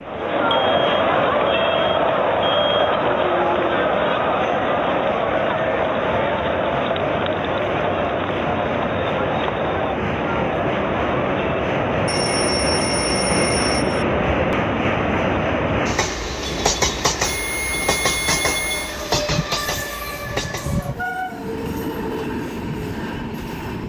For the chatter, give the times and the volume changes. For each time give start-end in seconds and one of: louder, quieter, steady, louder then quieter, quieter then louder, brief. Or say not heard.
0.0-15.8 quieter.